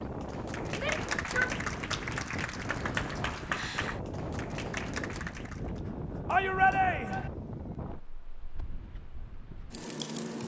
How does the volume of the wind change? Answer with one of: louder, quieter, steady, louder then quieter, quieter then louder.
quieter.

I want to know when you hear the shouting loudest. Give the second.
7 s.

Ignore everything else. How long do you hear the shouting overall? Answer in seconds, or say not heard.
2 s.